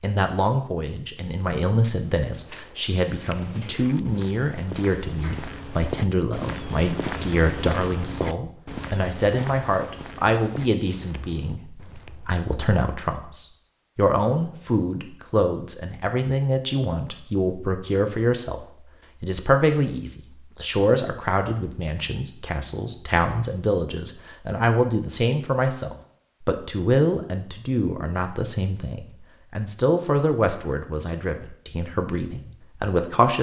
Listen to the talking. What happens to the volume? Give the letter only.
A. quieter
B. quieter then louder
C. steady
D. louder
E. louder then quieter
C.